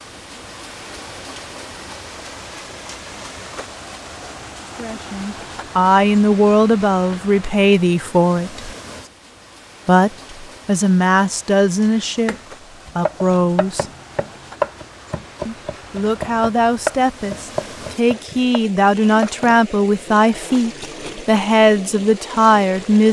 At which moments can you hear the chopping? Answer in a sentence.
You can hear the chopping from 11.9 to 19.6 s.